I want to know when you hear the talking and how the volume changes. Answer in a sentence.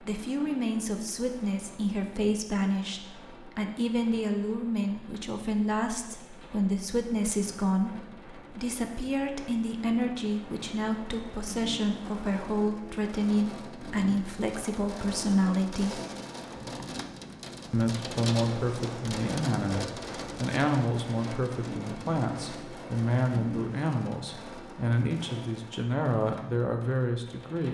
You can hear the talking from 0.0 to 16.0 s, at a steady volume; and from 17.7 to 27.6 s, at a steady volume.